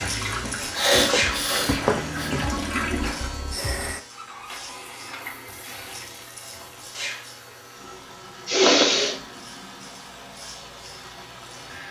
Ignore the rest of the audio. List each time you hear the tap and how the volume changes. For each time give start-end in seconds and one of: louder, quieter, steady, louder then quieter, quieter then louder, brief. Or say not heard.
0.0-11.8 quieter.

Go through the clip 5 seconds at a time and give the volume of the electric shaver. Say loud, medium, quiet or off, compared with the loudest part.
loud, medium, medium.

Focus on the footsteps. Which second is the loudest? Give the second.
2 s.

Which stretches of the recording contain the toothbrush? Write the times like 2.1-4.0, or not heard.
not heard.